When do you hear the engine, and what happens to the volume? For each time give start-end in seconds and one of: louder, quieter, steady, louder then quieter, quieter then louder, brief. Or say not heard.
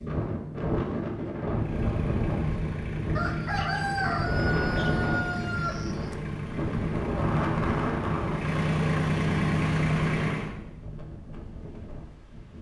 1.5-10.6 louder.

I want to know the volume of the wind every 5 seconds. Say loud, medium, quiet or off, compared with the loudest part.
loud, loud, quiet.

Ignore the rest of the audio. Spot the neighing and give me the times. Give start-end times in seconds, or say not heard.
not heard.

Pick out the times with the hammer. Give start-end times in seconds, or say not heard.
not heard.